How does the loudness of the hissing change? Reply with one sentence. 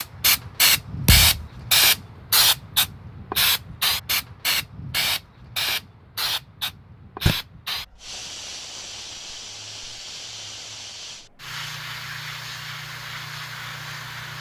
The volume of the hissing goes down.